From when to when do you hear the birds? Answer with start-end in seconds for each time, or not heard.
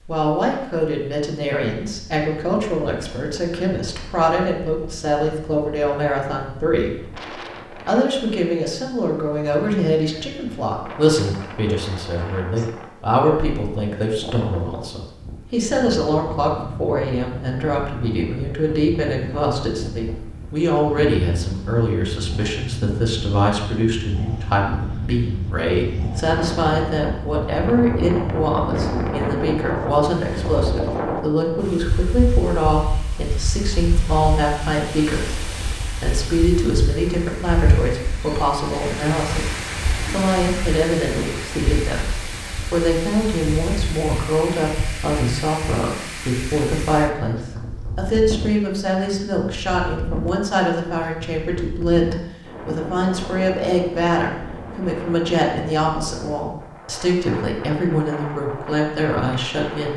not heard.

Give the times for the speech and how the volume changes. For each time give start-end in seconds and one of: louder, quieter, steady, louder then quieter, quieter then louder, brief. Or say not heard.
0.1-59.9 steady.